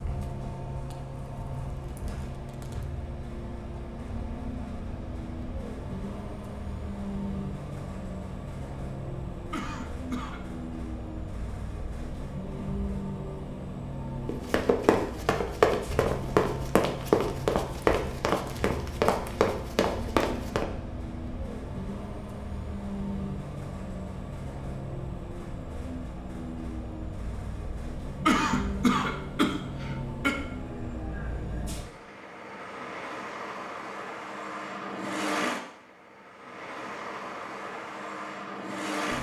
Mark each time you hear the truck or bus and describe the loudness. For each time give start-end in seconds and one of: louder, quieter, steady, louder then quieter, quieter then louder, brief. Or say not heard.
0.0-39.1 steady.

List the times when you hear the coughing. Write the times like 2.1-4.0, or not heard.
9.5-10.4, 28.2-30.4.